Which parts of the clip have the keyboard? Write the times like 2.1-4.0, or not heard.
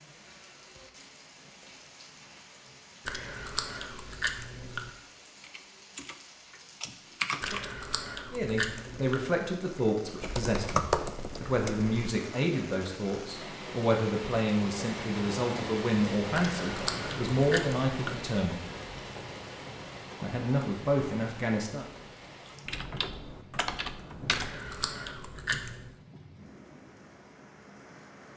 5.4-7.8, 10.2-11.9, 22.6-24.6.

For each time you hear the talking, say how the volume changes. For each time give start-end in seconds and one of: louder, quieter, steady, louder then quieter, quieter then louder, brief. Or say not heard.
8.3-18.6 steady
20.2-21.9 brief.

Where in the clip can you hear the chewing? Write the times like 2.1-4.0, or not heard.
3.0-4.9, 7.4-9.3, 16.4-18.2, 24.3-25.9.